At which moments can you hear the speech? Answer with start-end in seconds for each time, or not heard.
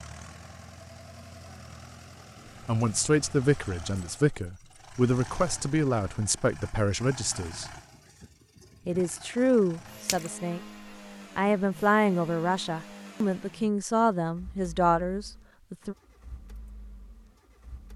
2.6-7.7, 8.8-10.6, 11.3-15.9.